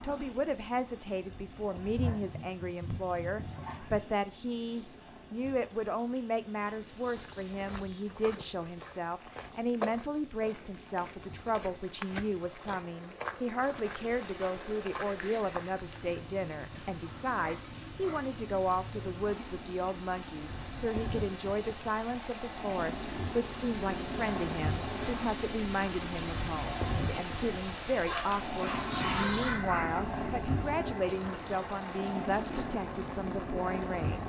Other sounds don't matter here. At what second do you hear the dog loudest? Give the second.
29 s.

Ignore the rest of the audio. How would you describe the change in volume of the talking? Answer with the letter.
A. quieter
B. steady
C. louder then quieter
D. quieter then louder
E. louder
B.